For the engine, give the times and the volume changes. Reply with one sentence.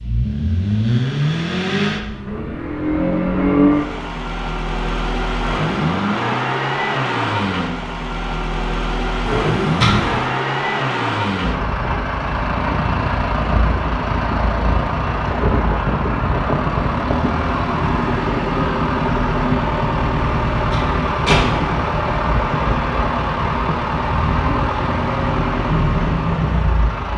You can hear the engine from 0.0 to 27.1 s, at a steady volume.